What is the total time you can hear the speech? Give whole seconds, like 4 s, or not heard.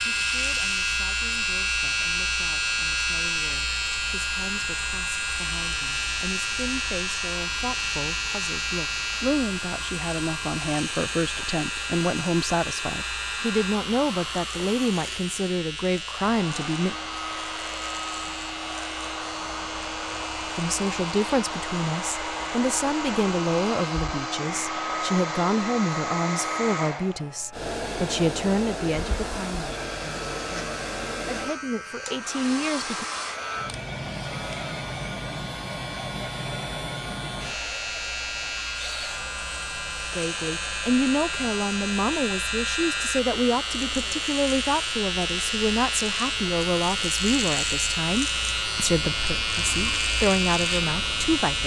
41 s.